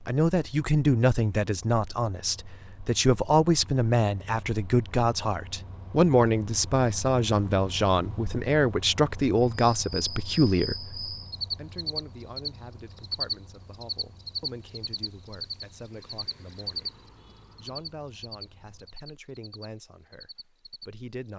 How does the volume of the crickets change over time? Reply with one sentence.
The volume of the crickets goes down.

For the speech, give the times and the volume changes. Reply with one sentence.
The speech can be heard from 0.0 to 21.3 s, getting quieter.